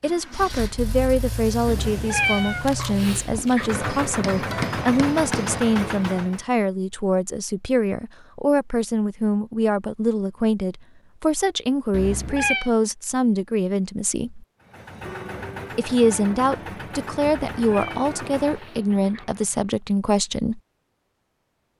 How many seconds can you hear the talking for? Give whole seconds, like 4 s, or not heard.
19 s.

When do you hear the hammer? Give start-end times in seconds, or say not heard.
4.0-5.7.